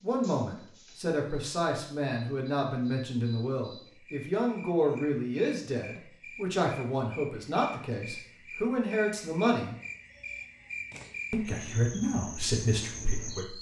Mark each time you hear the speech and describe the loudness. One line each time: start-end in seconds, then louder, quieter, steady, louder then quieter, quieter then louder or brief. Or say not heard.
0.0-9.8 steady
11.3-13.5 brief.